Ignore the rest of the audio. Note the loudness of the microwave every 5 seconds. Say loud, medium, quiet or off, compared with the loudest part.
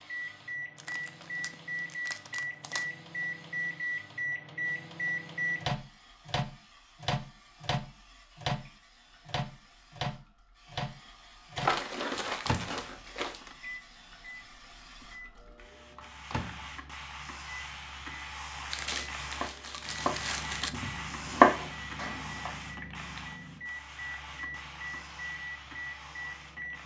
loud, loud, medium, quiet, medium, medium.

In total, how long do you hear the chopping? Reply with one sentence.
You can hear the chopping for 3 seconds altogether.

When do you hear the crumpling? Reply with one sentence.
The crumpling can be heard from 0.8 to 2.9 s, from 11.6 to 13.6 s and from 18.7 to 20.7 s.